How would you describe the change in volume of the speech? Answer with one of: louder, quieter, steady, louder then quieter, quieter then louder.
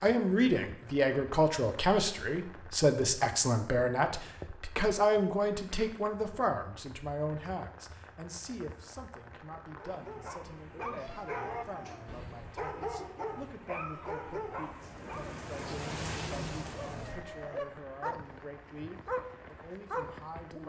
quieter.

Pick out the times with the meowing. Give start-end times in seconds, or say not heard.
10.9-12.2.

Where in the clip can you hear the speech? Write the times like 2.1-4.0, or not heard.
0.0-20.6.